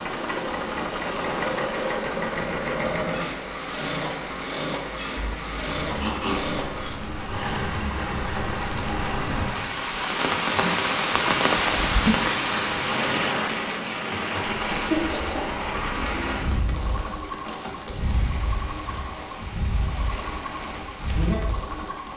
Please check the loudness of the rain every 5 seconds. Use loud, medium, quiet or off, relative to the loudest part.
medium, medium, loud, medium, medium.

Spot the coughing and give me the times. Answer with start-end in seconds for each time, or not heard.
6.0-6.5, 14.7-15.4.